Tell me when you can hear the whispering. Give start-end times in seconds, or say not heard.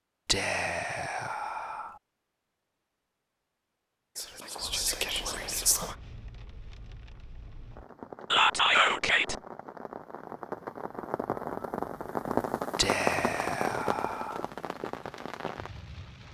0.2-1.9, 4.2-6.0, 8.3-9.3, 12.8-14.4.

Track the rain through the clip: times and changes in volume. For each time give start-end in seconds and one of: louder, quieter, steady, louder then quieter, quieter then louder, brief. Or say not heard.
4.5-16.2 louder then quieter.